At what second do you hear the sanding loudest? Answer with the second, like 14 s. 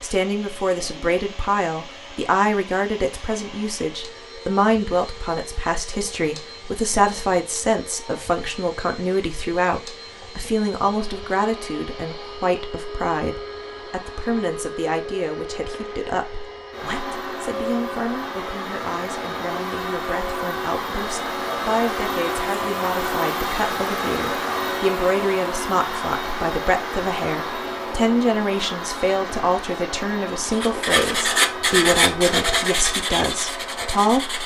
32 s.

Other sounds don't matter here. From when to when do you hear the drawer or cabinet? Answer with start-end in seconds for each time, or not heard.
not heard.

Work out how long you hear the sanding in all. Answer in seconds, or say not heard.
4 s.